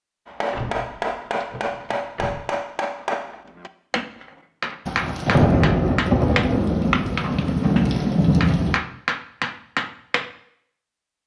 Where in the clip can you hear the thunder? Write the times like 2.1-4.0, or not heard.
4.8-8.8.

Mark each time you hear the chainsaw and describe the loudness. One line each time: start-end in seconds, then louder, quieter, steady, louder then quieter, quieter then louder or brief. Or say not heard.
not heard.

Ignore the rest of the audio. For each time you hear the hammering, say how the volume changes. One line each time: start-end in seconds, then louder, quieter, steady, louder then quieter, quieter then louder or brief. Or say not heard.
0.2-10.3 steady.